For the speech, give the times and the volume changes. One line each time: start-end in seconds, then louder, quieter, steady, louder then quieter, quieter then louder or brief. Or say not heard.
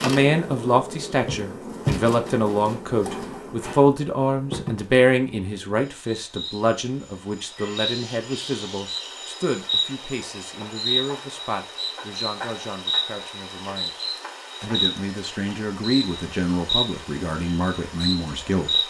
0.0-18.8 quieter then louder.